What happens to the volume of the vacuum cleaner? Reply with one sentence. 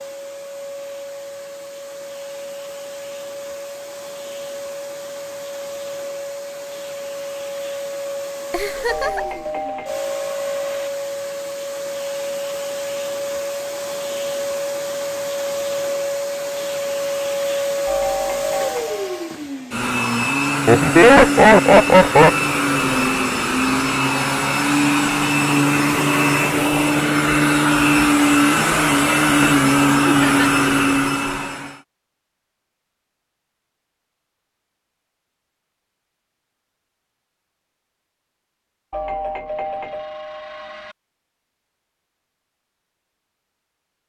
The loudness of the vacuum cleaner goes up.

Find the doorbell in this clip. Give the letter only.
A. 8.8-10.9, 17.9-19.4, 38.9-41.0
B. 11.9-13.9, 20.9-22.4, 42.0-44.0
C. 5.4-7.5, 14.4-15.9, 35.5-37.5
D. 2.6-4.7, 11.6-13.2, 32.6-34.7
A.